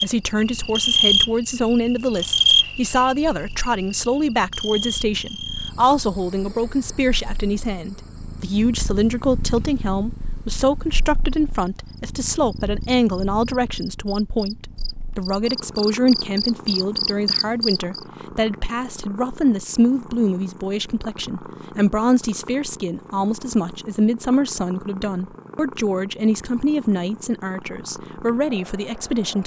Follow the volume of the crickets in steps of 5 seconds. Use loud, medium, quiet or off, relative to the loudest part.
loud, quiet, quiet, loud, off, off.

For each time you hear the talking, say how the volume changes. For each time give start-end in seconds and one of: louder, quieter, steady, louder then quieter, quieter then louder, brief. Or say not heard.
0.0-29.4 steady.